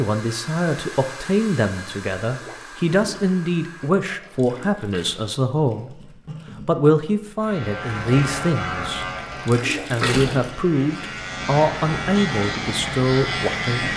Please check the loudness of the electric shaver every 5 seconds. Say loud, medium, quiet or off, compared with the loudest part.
off, loud, loud.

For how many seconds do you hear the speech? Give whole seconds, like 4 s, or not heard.
13 s.